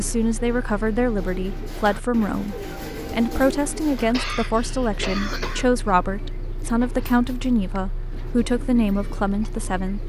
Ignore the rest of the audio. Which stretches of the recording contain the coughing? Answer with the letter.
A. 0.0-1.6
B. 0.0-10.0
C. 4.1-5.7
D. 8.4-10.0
C.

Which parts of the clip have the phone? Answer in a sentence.
The phone can't be heard in this clip.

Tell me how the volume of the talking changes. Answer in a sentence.
The volume of the talking stays about the same.